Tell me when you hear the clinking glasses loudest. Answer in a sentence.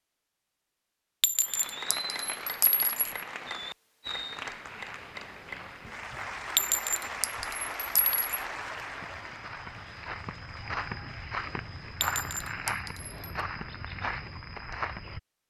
The loudest moment of the clinking glasses is at 7 seconds.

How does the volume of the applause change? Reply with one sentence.
The volume of the applause goes down.